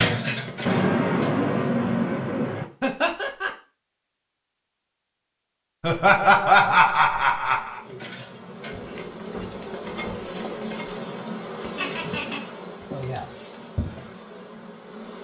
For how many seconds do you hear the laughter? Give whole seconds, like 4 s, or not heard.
3 s.